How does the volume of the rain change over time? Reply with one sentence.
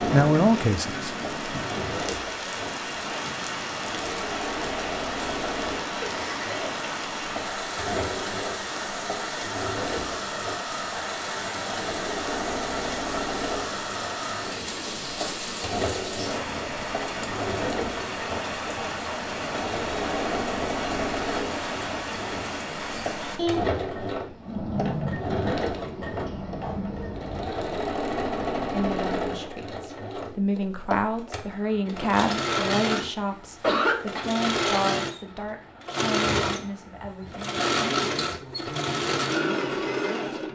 The volume of the rain stays about the same.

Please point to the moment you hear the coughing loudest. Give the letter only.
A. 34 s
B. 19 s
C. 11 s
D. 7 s
A.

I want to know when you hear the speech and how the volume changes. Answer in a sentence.
The speech can be heard briefly from 0.1 to 1.6 s; and from 28.7 to 40.4 s, getting quieter.